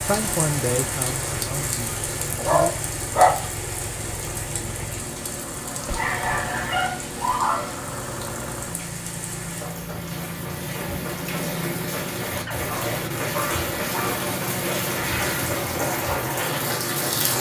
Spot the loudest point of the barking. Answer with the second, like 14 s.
3 s.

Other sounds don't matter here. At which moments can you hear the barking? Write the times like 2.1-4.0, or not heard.
2.4-3.5, 5.8-7.8, 12.4-14.3.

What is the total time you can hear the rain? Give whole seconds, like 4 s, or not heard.
17 s.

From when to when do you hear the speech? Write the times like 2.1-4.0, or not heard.
0.0-2.9.